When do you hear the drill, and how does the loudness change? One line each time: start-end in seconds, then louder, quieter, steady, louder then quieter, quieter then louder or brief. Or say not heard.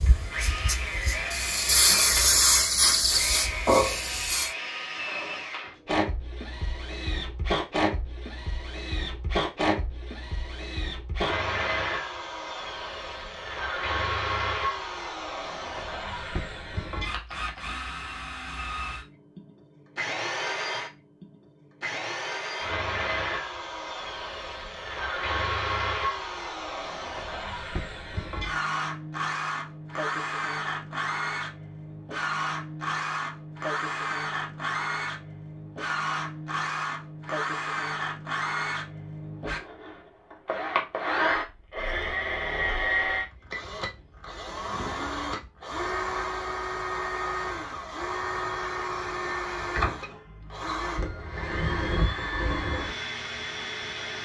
0.0-54.2 steady.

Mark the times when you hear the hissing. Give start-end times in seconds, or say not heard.
0.0-4.5.